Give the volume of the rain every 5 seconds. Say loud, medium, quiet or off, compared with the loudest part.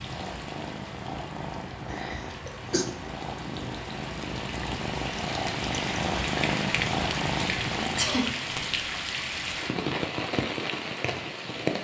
quiet, loud, loud.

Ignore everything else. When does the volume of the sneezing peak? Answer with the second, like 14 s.
8 s.